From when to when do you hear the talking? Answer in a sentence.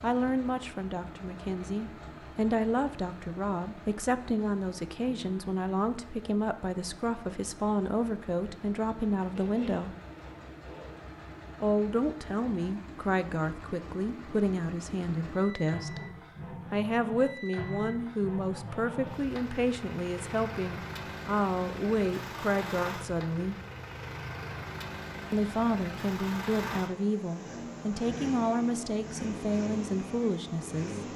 You can hear the talking from 0.0 to 9.9 s, from 11.6 to 16.0 s, from 16.7 to 23.6 s and from 25.3 to 31.0 s.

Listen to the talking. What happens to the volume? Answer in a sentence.
The loudness of the talking stays about the same.